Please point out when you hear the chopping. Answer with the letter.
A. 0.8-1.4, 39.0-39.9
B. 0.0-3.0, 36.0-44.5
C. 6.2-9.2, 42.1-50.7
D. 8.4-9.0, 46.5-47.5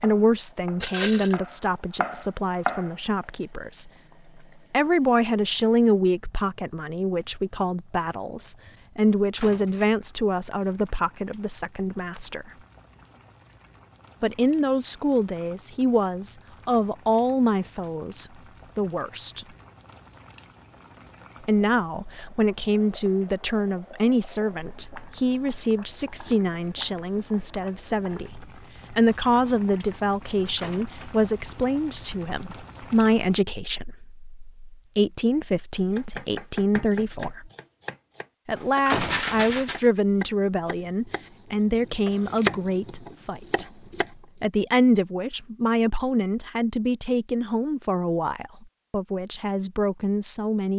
B.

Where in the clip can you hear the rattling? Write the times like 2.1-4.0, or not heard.
0.8-1.4, 39.0-39.9.